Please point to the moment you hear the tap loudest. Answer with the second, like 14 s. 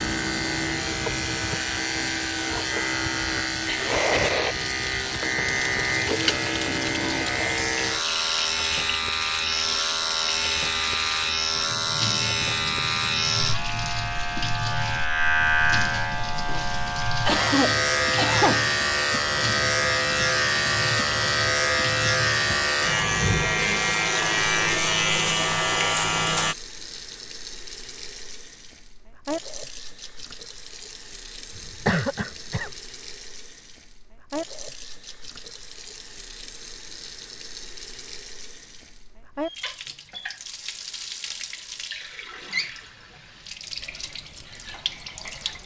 4 s.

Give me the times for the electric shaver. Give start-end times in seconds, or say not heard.
0.0-26.6.